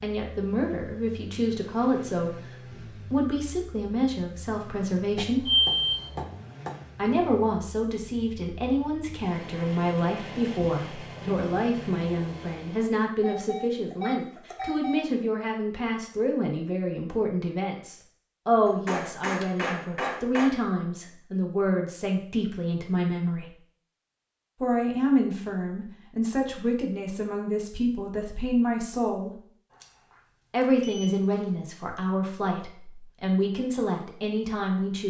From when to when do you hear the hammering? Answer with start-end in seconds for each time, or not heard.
5.2-6.8, 18.6-20.6.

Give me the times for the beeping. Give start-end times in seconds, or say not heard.
5.5-6.1, 13.2-15.0, 29.7-31.4.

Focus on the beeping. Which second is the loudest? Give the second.
6 s.